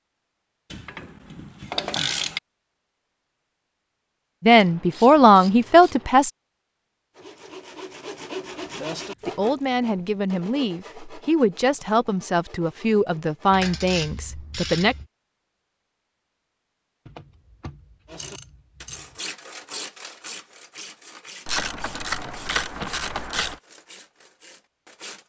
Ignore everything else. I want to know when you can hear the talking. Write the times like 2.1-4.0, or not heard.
4.4-6.3, 9.2-14.9.